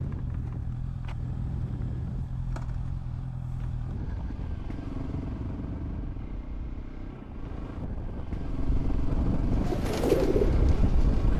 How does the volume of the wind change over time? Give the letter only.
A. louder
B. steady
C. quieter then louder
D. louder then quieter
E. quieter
A.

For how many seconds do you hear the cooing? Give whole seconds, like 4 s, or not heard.
2 s.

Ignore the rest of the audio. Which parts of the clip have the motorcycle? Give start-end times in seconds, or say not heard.
0.0-11.3.